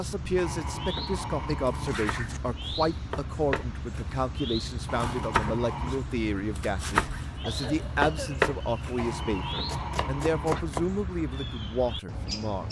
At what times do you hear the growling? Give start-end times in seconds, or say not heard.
0.3-2.4, 4.8-6.0, 8.9-10.7.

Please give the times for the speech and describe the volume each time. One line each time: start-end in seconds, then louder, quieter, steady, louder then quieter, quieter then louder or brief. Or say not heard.
0.0-12.6 steady.